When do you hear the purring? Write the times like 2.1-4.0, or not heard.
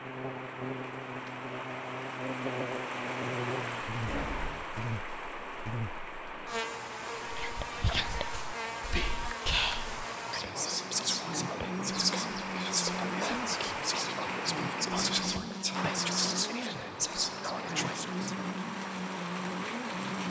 not heard.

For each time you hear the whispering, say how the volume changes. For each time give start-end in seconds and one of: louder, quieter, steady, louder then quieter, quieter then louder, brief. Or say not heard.
7.2-18.4 steady.